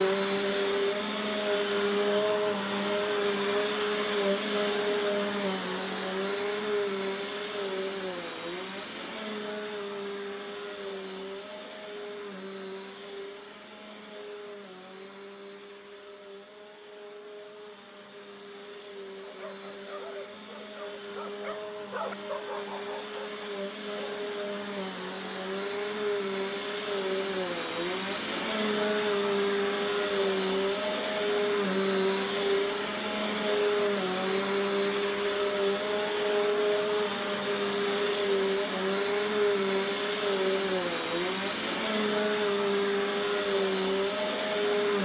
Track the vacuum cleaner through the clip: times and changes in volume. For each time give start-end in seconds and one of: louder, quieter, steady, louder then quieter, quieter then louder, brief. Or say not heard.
0.0-45.0 quieter then louder.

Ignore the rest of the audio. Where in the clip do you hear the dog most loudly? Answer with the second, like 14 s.
22 s.